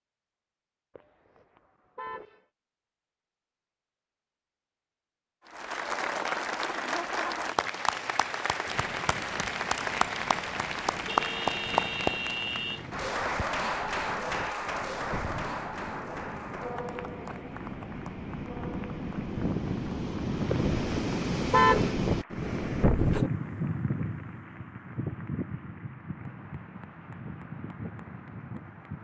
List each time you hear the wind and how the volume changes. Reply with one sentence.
The wind can be heard from 8.7 to 28.9 s, getting louder then quieter.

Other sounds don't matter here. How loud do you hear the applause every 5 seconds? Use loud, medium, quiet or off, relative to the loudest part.
off, loud, loud, medium, quiet, quiet.